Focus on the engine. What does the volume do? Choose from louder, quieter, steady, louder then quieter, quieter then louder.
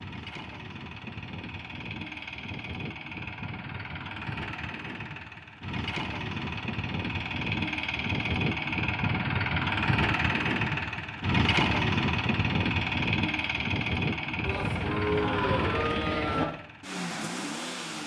louder then quieter.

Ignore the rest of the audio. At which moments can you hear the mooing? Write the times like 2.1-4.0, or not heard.
14.4-16.4.